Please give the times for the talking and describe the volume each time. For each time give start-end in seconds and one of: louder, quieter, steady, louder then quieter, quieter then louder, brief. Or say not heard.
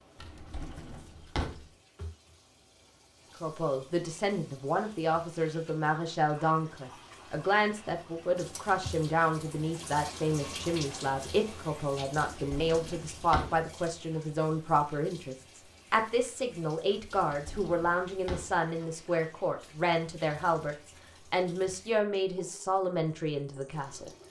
3.4-24.1 steady.